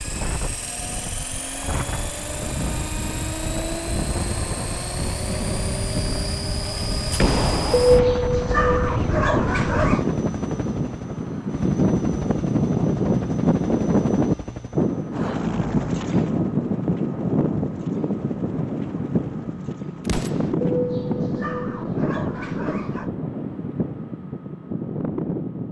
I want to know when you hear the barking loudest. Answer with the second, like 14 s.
8 s.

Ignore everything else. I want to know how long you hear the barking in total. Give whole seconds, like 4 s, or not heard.
5 s.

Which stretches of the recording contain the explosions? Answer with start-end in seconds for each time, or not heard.
7.1-8.3, 20.1-20.5.